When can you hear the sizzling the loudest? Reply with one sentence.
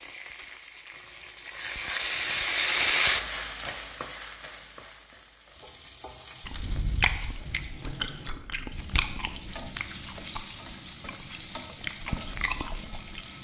The loudest moment of the sizzling is at 3 seconds.